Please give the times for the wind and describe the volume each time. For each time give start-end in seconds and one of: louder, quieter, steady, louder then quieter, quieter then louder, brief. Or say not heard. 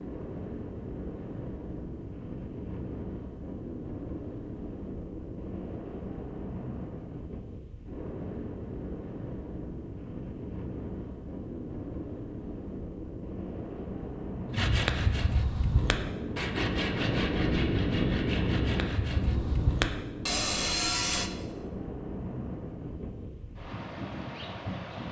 0.0-25.0 louder then quieter.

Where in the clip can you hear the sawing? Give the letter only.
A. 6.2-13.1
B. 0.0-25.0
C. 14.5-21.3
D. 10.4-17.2
C.